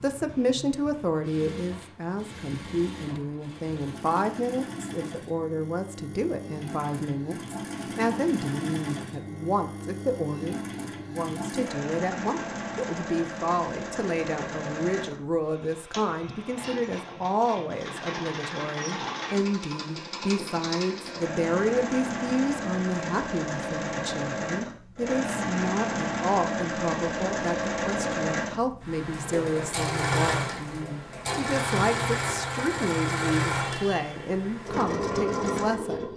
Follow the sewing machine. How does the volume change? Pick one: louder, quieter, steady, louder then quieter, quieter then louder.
louder.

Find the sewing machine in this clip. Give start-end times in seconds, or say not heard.
0.0-36.1.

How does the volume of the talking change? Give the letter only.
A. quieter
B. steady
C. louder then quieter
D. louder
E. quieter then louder
B.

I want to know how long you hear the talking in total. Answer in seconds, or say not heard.
36 s.